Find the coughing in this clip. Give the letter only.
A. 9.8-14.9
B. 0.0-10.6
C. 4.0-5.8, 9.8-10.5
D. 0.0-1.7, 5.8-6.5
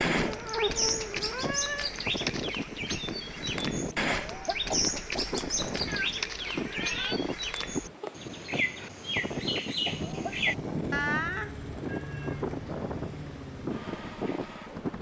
C.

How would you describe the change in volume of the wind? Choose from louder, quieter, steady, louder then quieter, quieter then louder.
steady.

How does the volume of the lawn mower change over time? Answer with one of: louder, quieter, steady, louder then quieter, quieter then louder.
steady.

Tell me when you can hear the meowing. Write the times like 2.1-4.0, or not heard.
0.2-1.9, 5.8-7.2, 10.9-12.4.